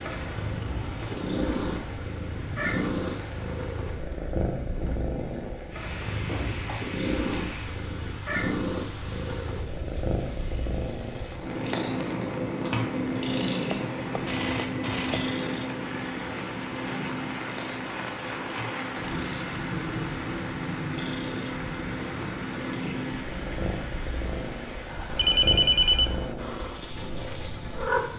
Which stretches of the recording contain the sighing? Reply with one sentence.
You can't hear the sighing here.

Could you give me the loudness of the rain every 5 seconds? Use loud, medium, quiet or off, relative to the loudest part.
medium, medium, medium, loud, loud, medium.